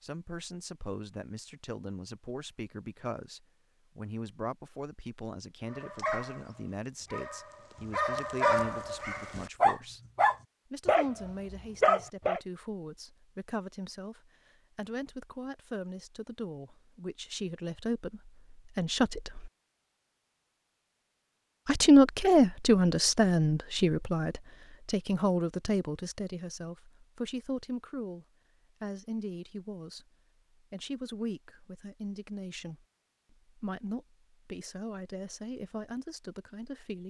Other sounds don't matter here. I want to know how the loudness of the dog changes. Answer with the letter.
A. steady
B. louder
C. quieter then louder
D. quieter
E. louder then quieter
B.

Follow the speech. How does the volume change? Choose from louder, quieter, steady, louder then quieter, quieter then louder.
louder then quieter.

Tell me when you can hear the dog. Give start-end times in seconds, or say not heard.
5.7-12.4.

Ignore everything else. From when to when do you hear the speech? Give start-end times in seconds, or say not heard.
0.0-10.0, 10.7-19.5, 21.6-30.1, 30.7-37.0.